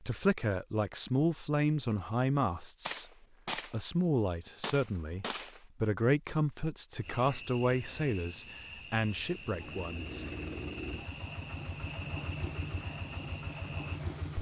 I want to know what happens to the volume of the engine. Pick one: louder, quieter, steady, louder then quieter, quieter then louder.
steady.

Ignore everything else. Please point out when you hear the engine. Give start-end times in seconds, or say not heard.
9.4-14.3.